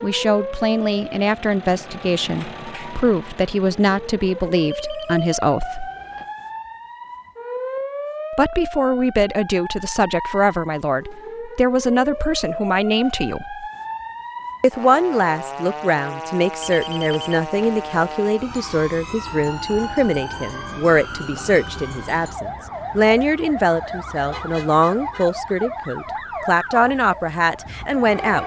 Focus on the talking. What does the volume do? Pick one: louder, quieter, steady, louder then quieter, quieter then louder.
steady.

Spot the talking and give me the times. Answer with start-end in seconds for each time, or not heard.
0.0-5.9, 8.3-13.7, 14.6-28.4.